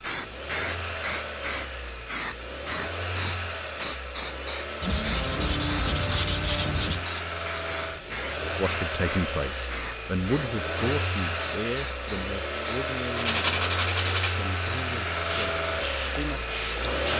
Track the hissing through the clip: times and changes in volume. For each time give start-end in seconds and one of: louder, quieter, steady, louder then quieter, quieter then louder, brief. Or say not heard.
0.0-17.1 quieter.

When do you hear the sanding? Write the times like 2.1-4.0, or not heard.
4.8-7.0, 13.2-14.4.